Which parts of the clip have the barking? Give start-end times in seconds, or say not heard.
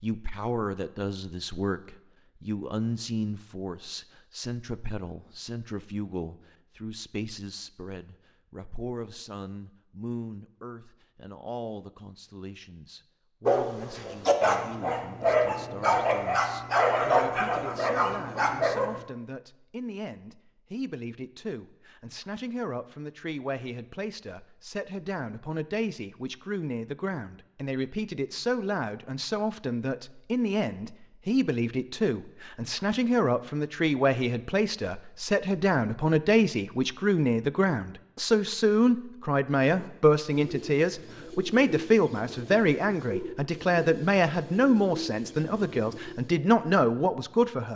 13.4-19.0.